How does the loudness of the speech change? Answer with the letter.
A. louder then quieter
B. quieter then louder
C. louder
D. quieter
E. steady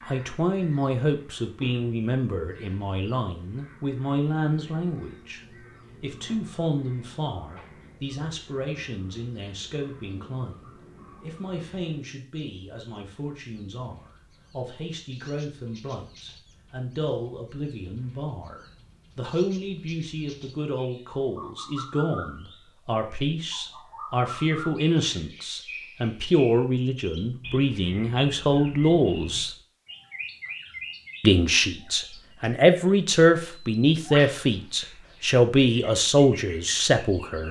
B.